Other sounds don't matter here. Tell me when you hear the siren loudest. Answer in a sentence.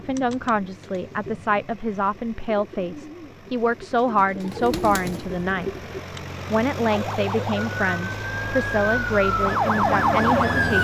The loudest moment of the siren is at 10 seconds.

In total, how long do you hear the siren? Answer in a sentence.
You can hear the siren for 4 seconds altogether.